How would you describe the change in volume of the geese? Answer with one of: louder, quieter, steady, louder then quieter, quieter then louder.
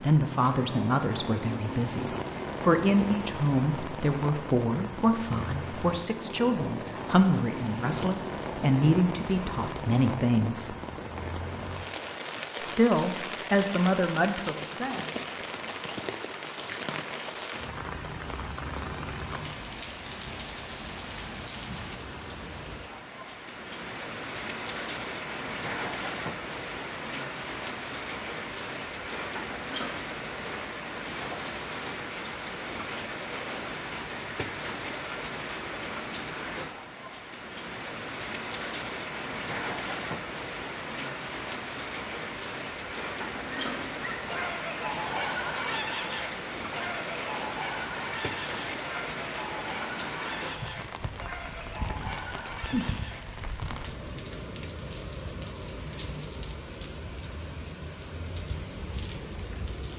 quieter.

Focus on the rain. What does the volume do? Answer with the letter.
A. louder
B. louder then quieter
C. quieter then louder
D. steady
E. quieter
D.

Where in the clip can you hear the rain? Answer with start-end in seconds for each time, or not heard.
0.0-59.9.